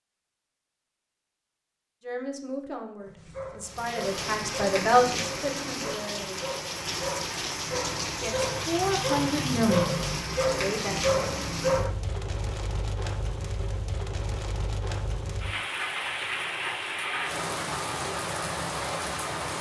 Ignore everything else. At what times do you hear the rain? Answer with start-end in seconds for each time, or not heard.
3.6-19.5.